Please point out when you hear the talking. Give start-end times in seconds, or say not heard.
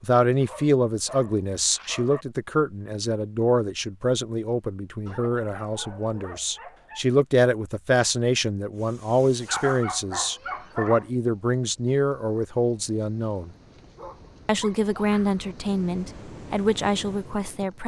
0.0-13.5, 14.4-17.8.